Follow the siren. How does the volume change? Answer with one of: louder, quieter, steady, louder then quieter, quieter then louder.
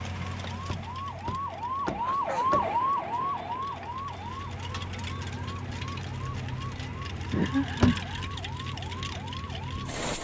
quieter.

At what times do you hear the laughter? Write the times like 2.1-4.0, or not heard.
2.0-2.7, 7.3-8.2.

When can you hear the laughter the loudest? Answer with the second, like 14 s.
8 s.